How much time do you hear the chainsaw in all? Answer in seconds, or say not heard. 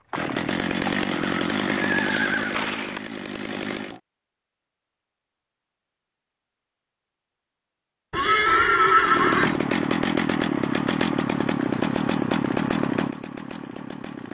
9 s.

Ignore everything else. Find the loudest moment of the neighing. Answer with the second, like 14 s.
9 s.